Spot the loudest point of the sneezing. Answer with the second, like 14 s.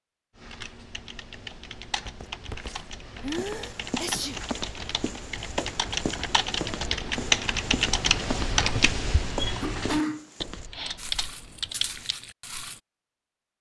10 s.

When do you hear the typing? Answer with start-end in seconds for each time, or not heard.
0.3-12.2.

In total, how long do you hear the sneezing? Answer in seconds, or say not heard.
2 s.